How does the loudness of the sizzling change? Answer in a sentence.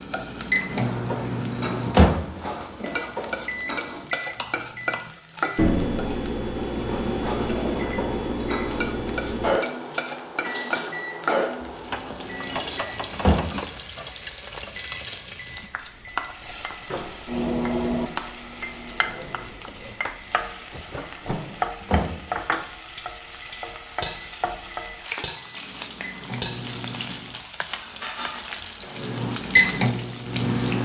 The volume of the sizzling stays about the same.